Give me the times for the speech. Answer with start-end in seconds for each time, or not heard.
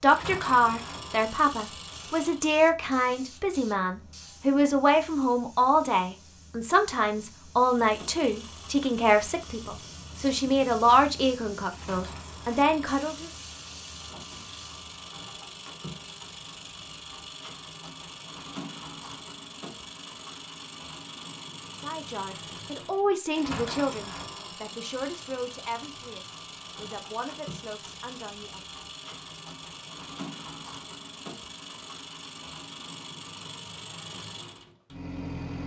0.0-13.3, 21.7-28.6.